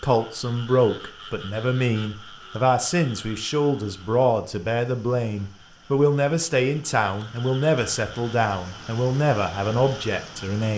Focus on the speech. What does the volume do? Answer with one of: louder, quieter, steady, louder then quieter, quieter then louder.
steady.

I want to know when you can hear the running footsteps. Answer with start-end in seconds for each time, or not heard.
not heard.